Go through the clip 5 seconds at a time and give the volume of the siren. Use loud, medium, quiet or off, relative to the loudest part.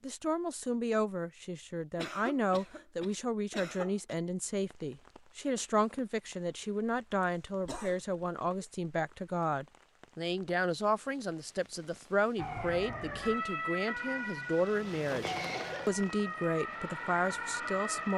off, off, loud, loud.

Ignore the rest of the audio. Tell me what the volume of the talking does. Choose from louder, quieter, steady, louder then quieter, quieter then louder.
steady.